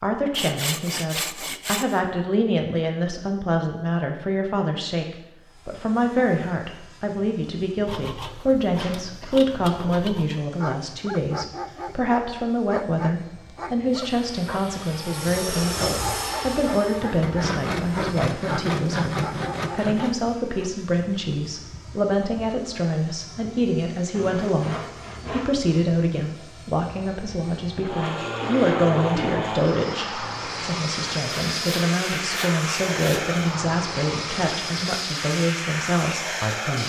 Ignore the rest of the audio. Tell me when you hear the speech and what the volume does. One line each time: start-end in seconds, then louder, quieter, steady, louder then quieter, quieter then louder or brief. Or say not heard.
0.0-36.8 steady.